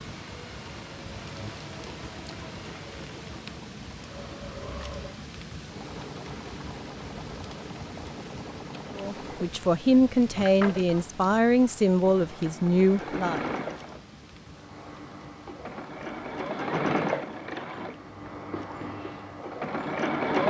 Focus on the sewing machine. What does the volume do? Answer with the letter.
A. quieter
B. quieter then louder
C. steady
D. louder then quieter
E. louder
E.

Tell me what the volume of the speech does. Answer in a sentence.
The loudness of the speech stays about the same.